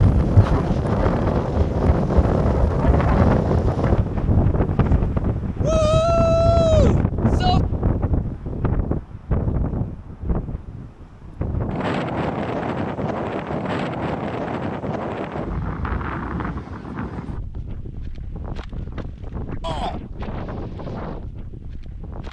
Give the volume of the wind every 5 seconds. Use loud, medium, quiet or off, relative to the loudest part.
loud, loud, medium, medium, quiet.